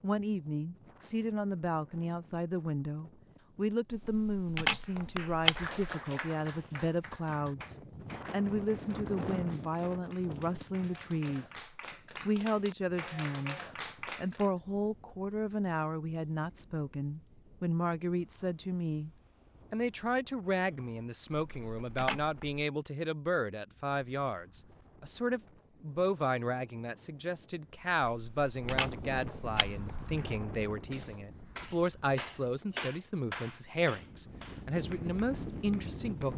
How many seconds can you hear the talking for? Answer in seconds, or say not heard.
35 s.